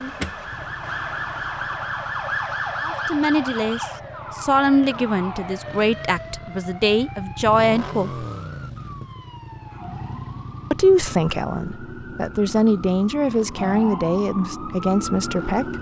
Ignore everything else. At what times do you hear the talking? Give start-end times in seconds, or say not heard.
2.8-8.2, 10.7-15.7.